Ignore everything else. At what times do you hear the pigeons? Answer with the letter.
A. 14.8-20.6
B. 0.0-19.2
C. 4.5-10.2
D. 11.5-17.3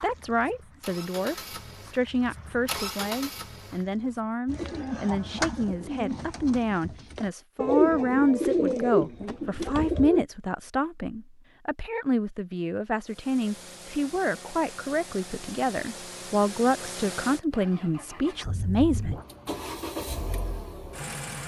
C.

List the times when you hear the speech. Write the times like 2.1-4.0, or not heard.
0.0-19.2.